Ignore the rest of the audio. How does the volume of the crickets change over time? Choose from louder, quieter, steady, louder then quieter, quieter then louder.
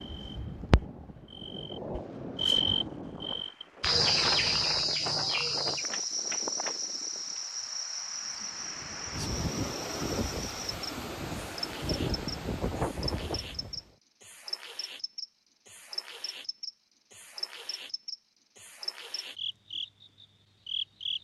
quieter.